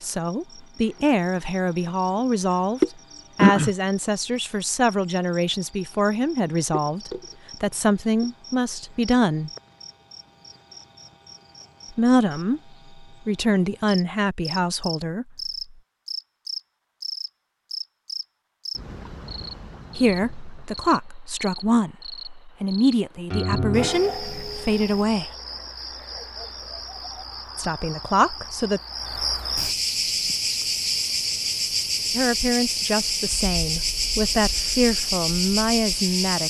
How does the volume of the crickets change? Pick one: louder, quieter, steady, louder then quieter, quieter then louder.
quieter then louder.